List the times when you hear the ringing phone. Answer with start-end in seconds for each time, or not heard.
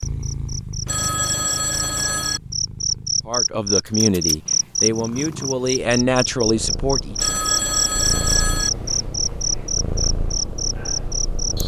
0.8-2.4, 7.2-8.7.